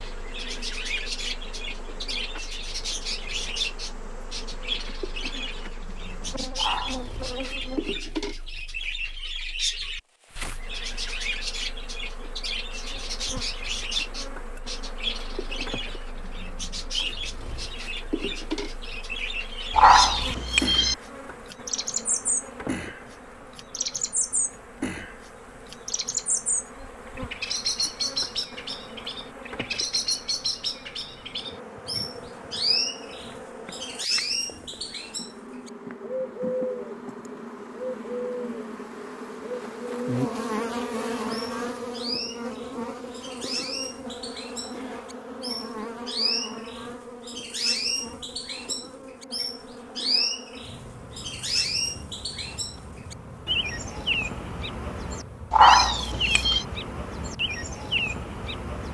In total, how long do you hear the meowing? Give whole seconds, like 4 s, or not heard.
4 s.